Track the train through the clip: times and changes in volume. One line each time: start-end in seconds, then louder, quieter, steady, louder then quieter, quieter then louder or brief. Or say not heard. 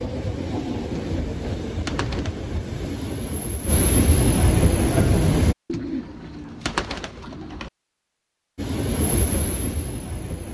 0.0-5.5 louder
8.6-10.4 brief.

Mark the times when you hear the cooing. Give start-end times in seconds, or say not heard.
0.9-2.5, 5.7-7.7.